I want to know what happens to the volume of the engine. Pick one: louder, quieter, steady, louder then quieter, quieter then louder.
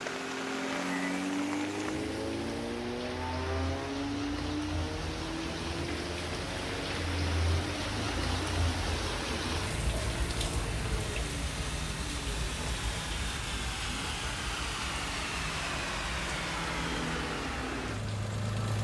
quieter then louder.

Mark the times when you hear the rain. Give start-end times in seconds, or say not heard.
0.0-18.7.